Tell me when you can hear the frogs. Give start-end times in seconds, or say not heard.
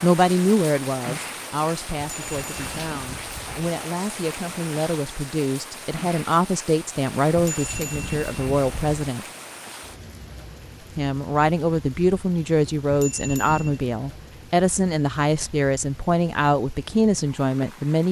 not heard.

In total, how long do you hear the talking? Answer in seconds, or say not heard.
16 s.